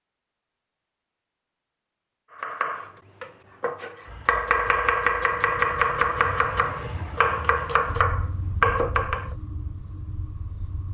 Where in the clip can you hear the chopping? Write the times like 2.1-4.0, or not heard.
2.4-9.3.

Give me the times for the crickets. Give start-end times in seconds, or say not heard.
4.0-10.8.